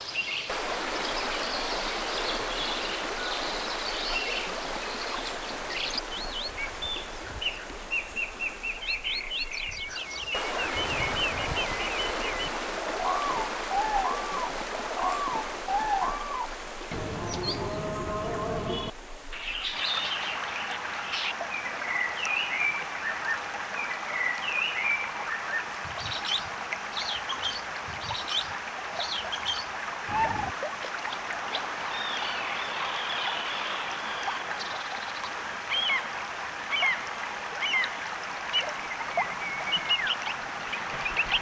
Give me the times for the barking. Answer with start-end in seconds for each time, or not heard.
not heard.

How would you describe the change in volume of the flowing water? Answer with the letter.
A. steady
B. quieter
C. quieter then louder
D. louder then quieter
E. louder
A.